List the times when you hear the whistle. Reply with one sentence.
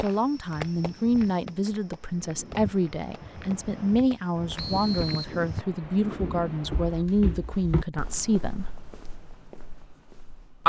You can hear the whistle from 4.5 to 5.4 s.